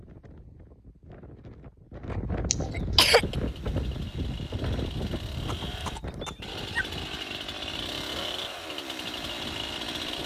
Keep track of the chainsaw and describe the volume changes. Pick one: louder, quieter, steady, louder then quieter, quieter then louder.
louder.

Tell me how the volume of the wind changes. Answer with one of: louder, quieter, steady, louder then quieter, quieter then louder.
louder then quieter.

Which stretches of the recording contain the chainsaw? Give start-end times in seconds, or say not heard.
3.0-10.2.